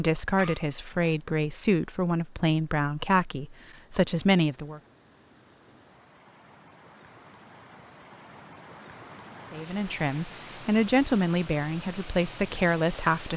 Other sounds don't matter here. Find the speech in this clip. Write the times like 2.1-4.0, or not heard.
0.0-4.8, 9.5-13.3.